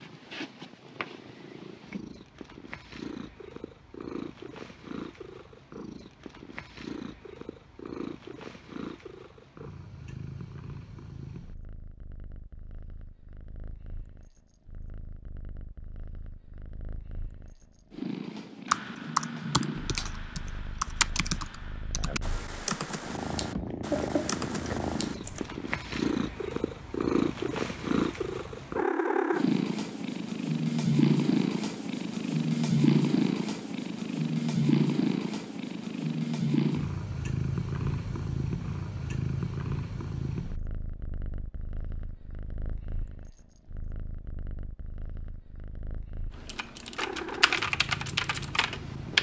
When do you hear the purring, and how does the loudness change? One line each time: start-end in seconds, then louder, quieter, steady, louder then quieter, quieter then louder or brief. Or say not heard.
0.0-49.1 louder then quieter.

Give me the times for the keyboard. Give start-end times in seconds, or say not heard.
18.6-25.5, 46.4-49.1.